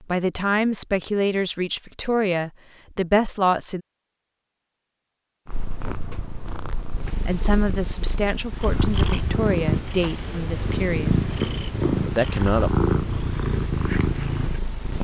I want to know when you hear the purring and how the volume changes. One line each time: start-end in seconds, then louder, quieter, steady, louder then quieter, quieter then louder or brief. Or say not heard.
5.5-14.9 louder.